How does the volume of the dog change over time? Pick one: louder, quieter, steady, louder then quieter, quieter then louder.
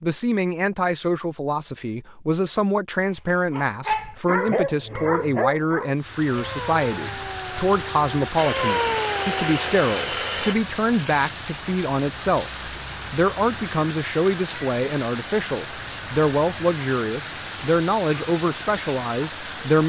quieter then louder.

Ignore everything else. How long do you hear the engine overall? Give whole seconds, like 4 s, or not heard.
2 s.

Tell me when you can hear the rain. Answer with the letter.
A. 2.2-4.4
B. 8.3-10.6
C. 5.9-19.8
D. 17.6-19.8
C.